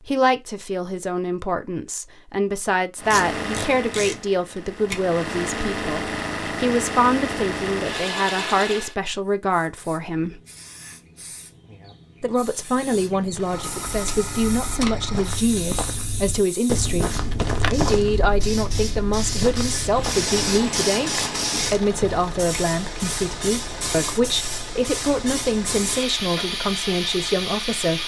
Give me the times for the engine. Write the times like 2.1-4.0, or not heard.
3.0-8.9, 19.9-28.0.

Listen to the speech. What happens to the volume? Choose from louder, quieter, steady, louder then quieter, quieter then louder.
steady.